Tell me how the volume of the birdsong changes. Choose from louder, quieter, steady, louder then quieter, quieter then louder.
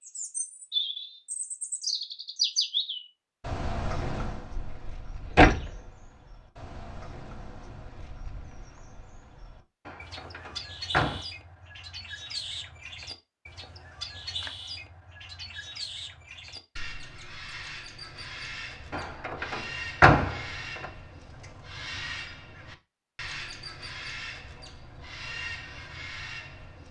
quieter then louder.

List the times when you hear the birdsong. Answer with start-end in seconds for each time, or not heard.
0.0-26.8.